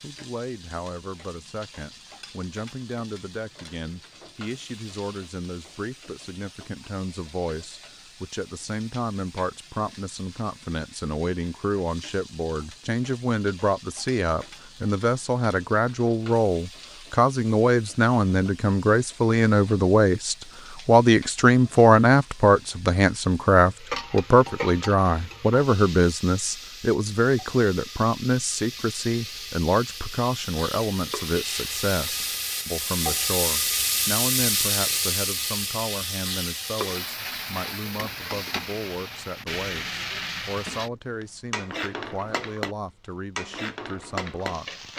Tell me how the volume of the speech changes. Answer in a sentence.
The volume of the speech goes up, then down.